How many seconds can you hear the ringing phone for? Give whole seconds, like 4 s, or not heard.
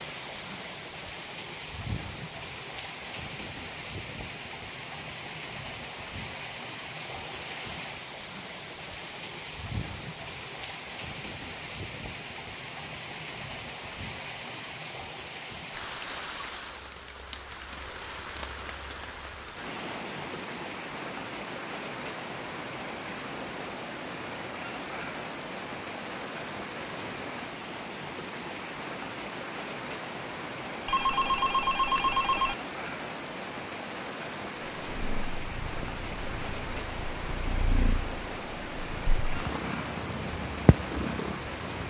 2 s.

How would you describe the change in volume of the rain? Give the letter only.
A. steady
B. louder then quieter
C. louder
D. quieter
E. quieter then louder
A.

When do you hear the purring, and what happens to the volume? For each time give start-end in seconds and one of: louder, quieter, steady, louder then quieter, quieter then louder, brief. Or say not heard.
34.8-41.8 louder.